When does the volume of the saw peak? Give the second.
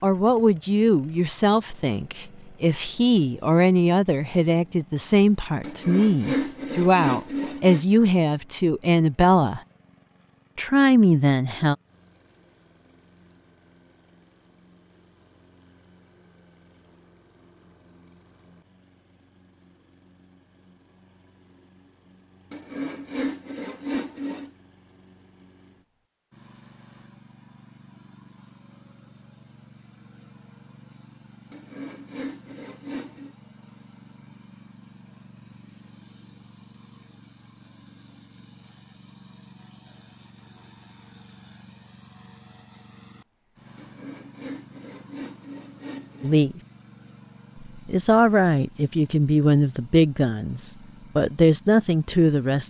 6 s.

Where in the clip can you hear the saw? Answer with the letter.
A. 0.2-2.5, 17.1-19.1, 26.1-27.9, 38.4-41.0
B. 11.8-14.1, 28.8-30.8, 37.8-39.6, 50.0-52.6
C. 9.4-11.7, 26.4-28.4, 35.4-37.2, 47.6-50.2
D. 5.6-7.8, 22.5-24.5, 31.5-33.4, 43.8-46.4
D.